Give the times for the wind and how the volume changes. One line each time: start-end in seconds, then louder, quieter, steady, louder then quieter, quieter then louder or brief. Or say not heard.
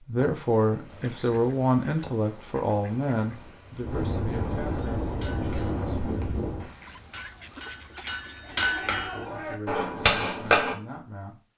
0.1-6.7 louder.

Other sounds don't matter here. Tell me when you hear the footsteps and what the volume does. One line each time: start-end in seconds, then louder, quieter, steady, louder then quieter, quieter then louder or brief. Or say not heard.
not heard.